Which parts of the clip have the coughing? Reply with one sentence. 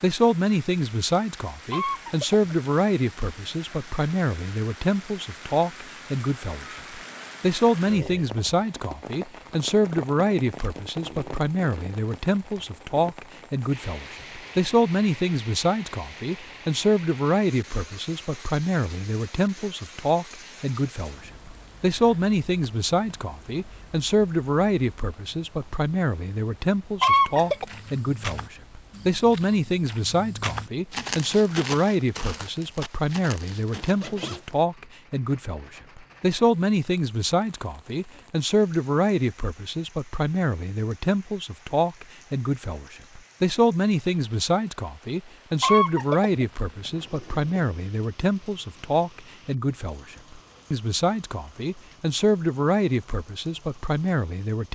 You can hear the coughing from 1.7 to 2.5 s, from 27.0 to 27.6 s and from 45.6 to 47.6 s.